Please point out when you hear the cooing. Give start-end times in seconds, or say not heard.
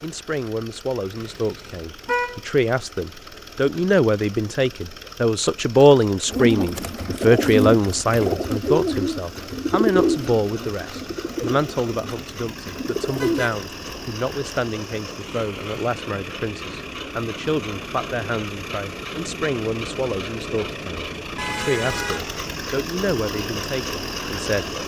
6.2-13.4.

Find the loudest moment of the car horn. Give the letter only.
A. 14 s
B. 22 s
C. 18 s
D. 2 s
D.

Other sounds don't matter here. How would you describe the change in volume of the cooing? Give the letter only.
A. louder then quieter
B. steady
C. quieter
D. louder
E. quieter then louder
C.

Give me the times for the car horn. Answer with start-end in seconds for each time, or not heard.
1.1-2.4, 13.2-14.1, 21.4-22.4.